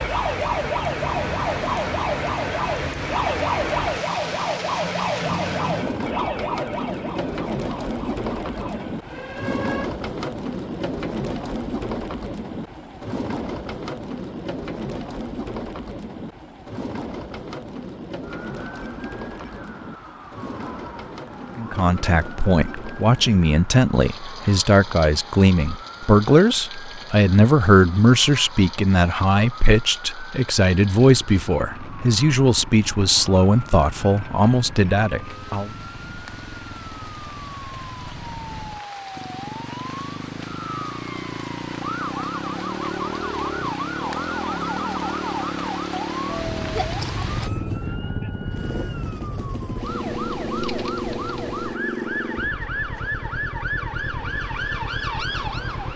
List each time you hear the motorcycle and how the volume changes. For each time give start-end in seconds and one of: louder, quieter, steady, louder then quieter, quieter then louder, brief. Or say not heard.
31.2-55.9 louder.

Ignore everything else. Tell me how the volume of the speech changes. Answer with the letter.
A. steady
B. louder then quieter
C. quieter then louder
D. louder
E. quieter
A.